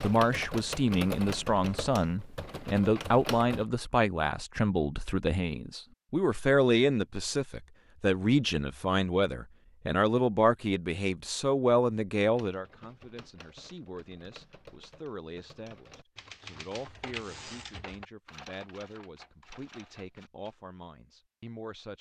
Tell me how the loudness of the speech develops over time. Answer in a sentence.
The loudness of the speech goes down.